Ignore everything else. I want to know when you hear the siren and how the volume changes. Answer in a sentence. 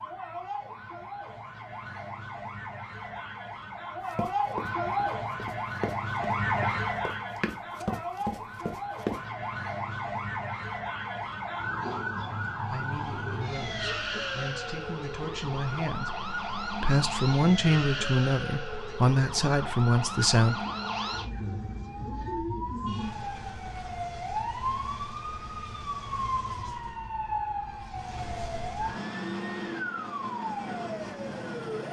You can hear the siren from 0.0 to 31.8 s, at a steady volume.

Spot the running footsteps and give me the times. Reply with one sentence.
You can hear the running footsteps from 4.1 to 9.2 s.